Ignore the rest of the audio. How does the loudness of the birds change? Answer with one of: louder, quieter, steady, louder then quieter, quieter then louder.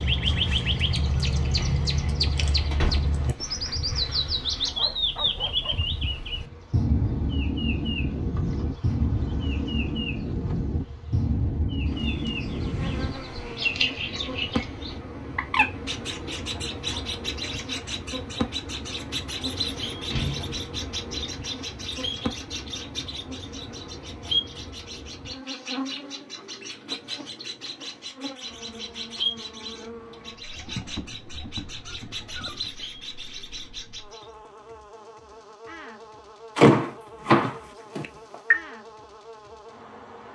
quieter.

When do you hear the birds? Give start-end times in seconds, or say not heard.
0.0-34.3.